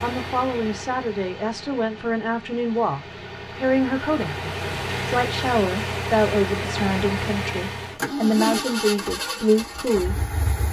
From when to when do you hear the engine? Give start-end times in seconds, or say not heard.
0.0-10.6.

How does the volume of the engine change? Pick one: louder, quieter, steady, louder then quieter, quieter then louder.
louder.